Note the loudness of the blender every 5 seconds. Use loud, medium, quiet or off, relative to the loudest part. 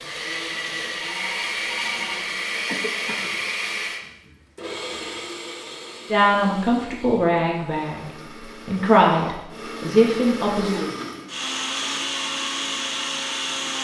loud, medium, loud.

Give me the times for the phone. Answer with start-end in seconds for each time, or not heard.
1.0-2.2.